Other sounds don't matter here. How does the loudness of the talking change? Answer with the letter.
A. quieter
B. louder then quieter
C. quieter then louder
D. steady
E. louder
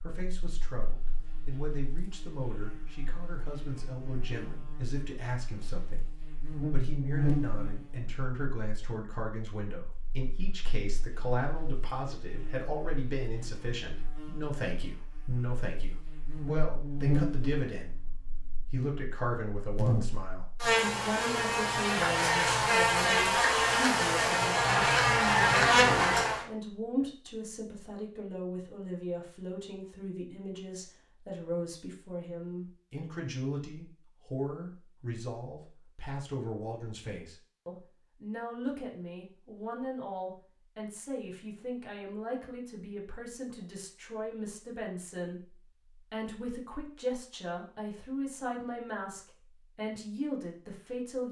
D.